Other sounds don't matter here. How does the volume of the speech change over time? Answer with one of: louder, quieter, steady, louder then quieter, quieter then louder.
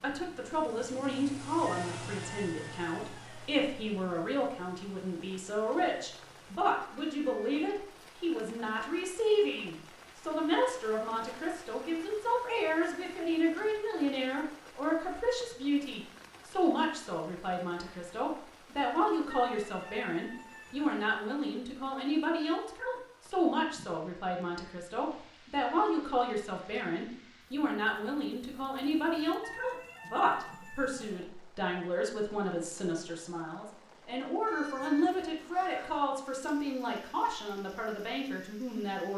steady.